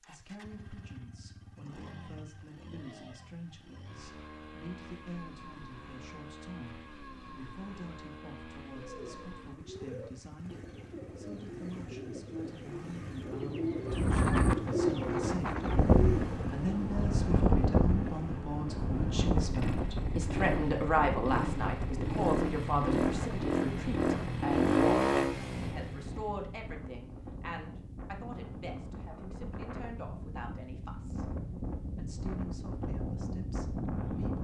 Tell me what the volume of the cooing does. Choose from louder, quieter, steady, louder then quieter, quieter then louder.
louder.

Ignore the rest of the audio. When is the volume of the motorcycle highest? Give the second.
25 s.